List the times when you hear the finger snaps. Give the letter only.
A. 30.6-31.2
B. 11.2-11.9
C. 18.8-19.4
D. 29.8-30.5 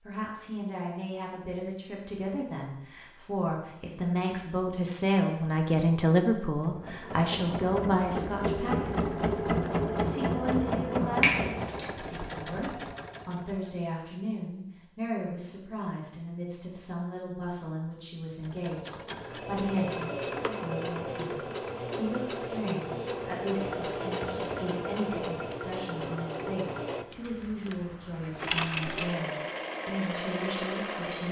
B.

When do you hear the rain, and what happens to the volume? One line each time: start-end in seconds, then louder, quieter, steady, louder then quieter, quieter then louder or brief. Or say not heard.
not heard.